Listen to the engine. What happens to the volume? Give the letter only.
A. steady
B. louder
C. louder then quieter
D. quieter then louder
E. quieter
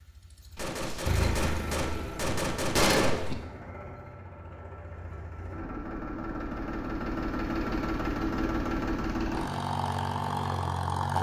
D.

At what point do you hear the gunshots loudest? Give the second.
3 s.